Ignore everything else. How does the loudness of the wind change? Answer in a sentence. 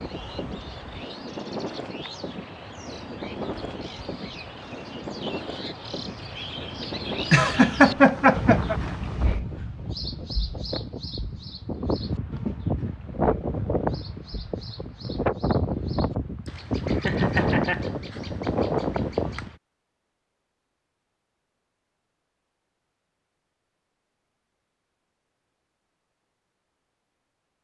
The loudness of the wind goes up.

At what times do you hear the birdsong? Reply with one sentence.
The birdsong can be heard from 0.0 to 19.6 s.